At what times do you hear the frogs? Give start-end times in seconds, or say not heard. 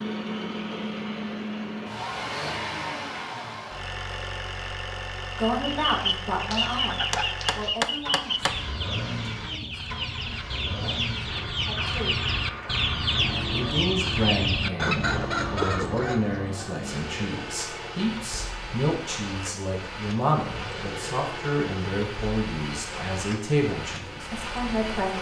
not heard.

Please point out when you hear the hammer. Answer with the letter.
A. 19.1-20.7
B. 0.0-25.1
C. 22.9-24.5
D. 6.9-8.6
D.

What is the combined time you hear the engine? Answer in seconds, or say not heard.
25 s.